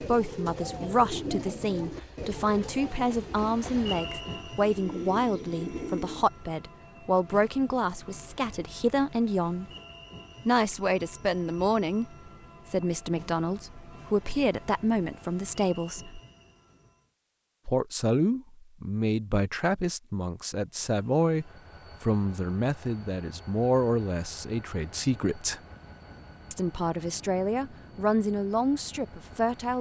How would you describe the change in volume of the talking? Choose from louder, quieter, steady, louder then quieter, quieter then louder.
steady.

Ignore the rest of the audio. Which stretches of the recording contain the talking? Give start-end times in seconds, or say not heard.
0.0-9.7, 10.4-16.2, 17.6-25.6, 26.5-29.7.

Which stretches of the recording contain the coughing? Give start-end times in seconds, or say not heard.
not heard.